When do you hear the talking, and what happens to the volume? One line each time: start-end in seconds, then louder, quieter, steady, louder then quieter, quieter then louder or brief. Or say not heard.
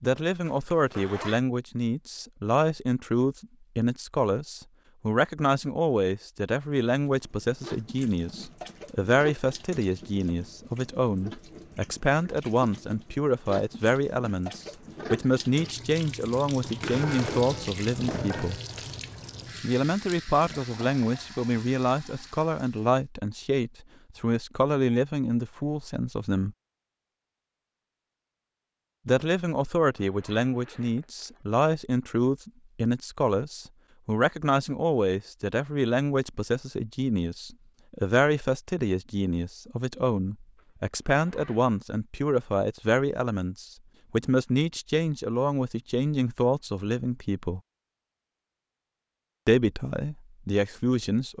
0.0-18.6 steady
19.6-26.6 steady
29.1-47.6 steady
49.5-51.3 brief.